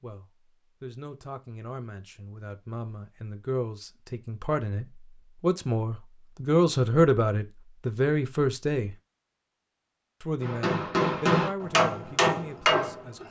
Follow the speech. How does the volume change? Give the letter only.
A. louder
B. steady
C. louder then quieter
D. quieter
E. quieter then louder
C.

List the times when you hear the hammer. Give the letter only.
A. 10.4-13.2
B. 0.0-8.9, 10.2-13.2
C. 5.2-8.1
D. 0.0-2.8
A.